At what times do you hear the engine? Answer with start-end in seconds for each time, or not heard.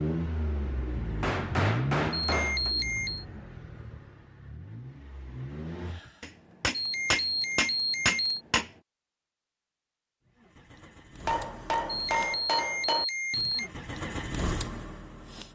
0.0-6.2, 10.2-15.5.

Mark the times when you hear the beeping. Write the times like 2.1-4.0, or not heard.
2.1-3.2, 6.7-8.4, 11.8-13.7.